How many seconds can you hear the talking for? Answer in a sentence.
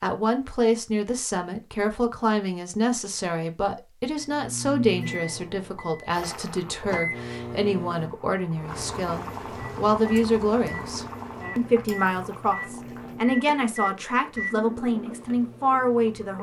The talking can be heard for 16 seconds in total.